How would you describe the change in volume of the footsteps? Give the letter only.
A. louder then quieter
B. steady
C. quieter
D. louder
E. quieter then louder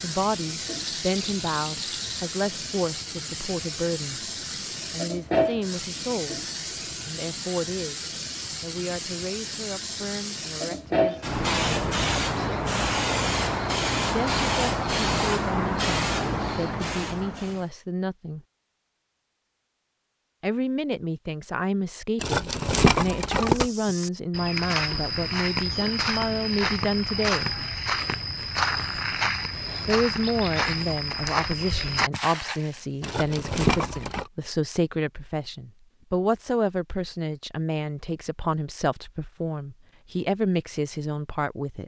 B.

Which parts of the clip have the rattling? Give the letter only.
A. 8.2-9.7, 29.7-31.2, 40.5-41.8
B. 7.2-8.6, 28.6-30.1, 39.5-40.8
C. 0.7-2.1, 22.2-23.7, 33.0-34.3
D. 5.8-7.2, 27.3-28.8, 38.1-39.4
C.